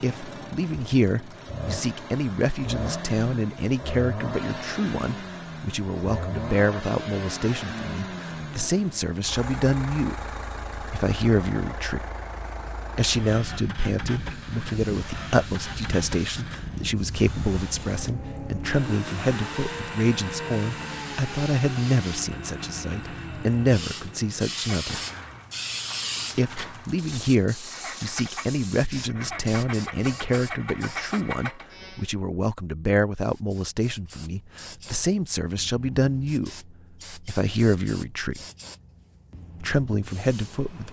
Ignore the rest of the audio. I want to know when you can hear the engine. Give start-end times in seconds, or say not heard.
0.0-32.1.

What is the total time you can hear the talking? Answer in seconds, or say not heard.
36 s.